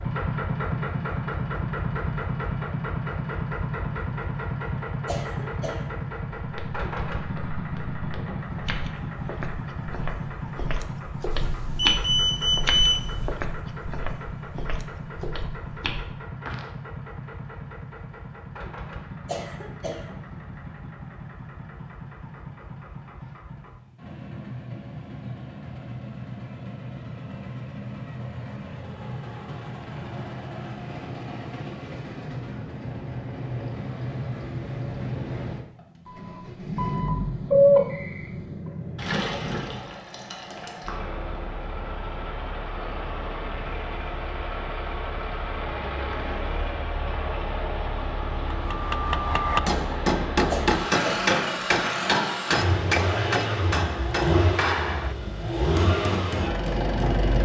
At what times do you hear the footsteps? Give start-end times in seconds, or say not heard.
6.3-16.7.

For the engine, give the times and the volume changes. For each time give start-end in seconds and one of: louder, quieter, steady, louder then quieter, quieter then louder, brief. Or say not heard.
0.0-57.3 quieter then louder.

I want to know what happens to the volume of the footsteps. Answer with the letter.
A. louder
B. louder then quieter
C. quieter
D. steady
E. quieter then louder
B.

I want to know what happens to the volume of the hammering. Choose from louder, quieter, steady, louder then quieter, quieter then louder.
quieter.